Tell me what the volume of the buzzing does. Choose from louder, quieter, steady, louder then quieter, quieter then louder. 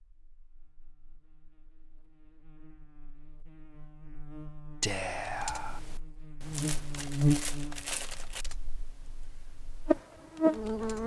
louder.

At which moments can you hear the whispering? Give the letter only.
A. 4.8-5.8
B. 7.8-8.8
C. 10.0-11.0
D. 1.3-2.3
A.